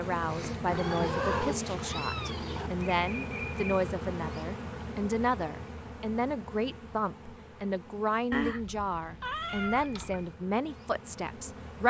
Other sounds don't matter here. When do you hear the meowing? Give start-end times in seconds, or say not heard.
0.7-2.7, 8.3-10.3.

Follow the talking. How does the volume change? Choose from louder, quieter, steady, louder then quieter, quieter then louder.
steady.